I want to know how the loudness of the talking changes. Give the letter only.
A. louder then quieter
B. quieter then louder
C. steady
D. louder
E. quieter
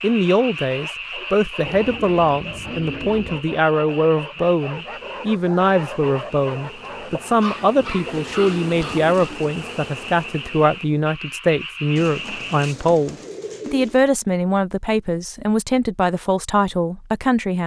C.